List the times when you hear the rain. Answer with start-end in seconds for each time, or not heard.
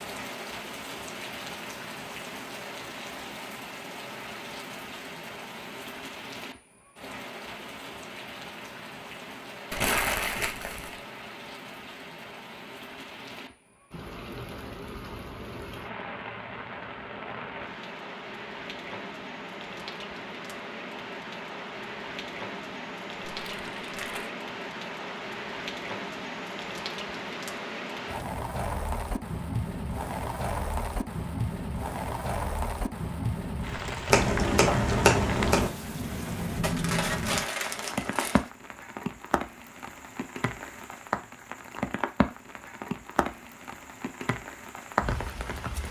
0.0-45.8.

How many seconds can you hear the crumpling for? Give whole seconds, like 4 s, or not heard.
4 s.